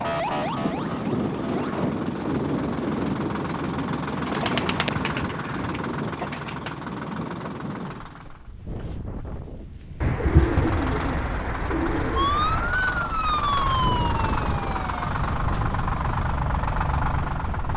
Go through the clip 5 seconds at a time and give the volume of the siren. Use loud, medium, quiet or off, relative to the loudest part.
medium, off, loud, off.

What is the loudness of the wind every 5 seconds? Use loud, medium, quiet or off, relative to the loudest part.
loud, medium, medium, medium.